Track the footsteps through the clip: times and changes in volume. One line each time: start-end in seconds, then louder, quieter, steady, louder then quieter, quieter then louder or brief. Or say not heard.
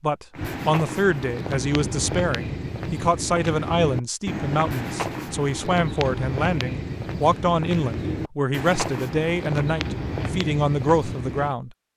0.3-11.6 steady.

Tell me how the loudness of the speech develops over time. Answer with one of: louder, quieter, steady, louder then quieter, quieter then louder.
steady.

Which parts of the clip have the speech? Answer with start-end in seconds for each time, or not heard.
0.0-11.8.